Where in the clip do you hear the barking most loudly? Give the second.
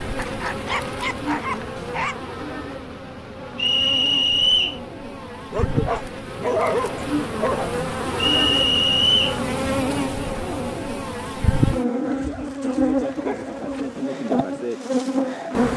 7 s.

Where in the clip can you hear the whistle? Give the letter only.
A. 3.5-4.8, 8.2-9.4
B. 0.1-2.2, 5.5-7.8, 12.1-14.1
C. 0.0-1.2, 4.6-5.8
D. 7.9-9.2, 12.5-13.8
A.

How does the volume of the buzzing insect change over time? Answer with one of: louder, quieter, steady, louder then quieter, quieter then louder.
louder.